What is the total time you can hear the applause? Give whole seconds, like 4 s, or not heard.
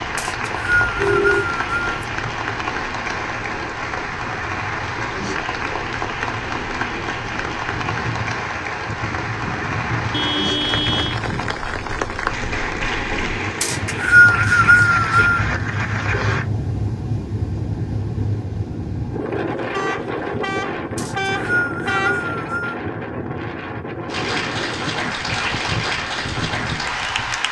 20 s.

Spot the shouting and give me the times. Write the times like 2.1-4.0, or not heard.
not heard.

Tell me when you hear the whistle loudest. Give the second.
14 s.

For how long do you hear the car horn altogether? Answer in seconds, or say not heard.
5 s.